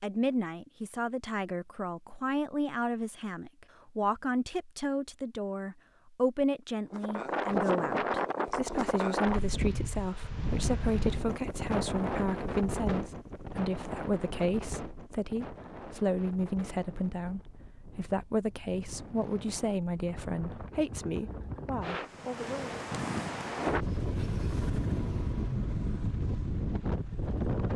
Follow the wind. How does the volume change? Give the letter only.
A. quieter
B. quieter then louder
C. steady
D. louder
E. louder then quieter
B.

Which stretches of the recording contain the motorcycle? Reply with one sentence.
You can hear the motorcycle from 23.8 to 27.7 s.